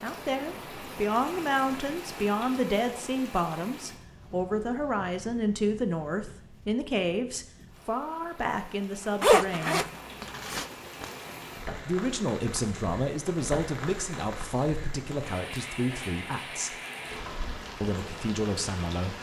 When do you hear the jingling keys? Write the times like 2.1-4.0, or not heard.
not heard.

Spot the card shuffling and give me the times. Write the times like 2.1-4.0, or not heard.
10.2-11.3.